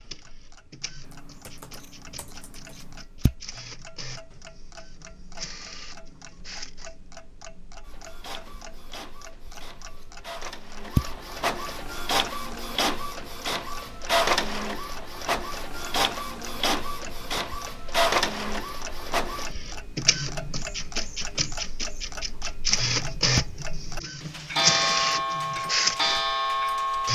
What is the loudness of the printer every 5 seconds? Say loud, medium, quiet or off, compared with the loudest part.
quiet, quiet, loud, loud, loud, loud.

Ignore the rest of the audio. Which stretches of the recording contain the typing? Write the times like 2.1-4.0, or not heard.
1.0-3.0.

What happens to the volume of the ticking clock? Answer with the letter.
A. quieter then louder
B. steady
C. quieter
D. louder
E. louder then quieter
D.